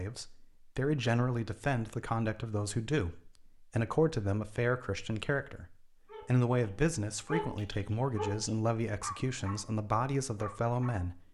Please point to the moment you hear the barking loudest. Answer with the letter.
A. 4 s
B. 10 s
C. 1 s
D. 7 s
D.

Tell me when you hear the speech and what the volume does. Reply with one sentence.
You can hear the speech from 0.0 to 11.2 s, at a steady volume.